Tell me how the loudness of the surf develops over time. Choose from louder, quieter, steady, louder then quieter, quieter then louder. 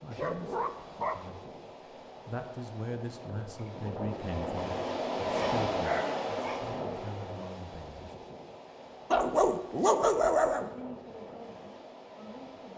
louder then quieter.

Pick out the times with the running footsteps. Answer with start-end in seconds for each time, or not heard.
not heard.